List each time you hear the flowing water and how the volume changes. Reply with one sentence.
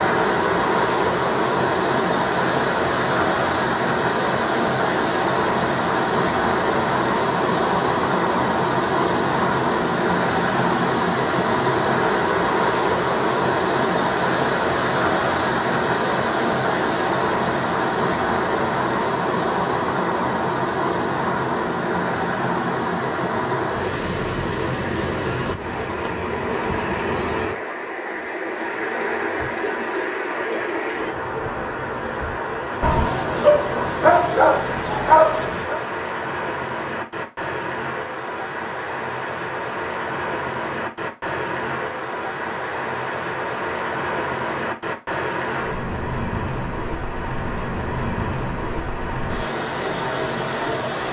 The flowing water can be heard from 0.0 to 51.0 s, getting quieter.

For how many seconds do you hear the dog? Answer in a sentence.
The dog can be heard for 3 seconds in total.